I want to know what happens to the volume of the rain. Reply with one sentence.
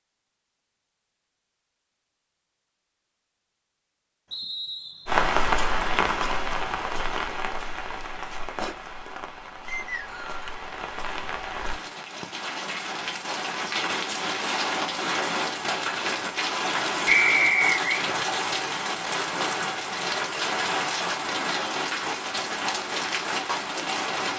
The volume of the rain goes down, then up.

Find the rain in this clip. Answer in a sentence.
You can hear the rain from 5.0 to 24.3 s.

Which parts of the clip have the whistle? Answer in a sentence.
You can hear the whistle from 4.3 to 5.2 s, from 9.7 to 10.4 s and from 17.1 to 18.0 s.